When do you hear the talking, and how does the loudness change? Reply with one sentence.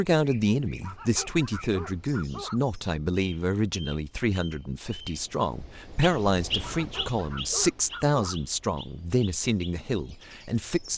You can hear the talking from 0.0 to 10.9 s, at a steady volume.